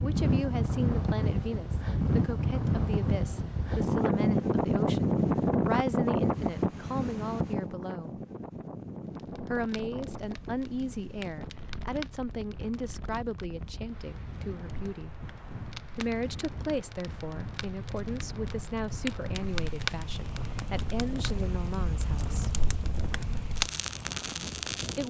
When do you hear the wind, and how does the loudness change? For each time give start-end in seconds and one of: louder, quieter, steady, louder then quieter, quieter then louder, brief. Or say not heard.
0.0-25.0 quieter.